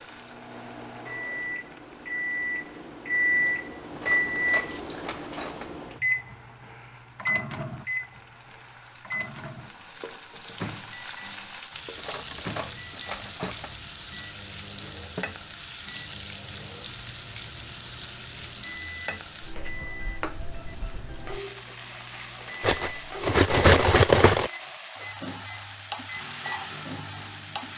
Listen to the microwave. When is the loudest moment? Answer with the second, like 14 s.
4 s.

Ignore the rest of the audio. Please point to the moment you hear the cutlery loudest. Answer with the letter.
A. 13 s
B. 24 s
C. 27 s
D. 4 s
B.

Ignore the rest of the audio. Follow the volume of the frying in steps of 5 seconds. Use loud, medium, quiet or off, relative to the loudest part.
quiet, quiet, loud, loud, loud, loud.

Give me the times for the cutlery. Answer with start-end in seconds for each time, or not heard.
3.9-5.8, 11.9-13.8, 22.6-24.5.